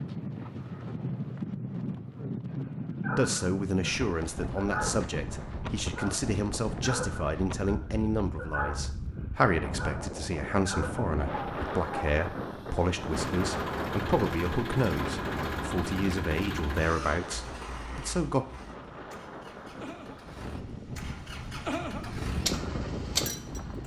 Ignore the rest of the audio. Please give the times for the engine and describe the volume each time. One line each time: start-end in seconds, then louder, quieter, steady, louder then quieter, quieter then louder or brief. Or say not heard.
13.1-23.8 quieter then louder.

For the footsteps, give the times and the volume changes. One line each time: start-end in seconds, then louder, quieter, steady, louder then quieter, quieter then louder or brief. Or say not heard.
not heard.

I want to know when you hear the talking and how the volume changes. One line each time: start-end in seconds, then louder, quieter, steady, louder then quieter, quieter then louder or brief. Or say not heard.
3.1-18.4 steady.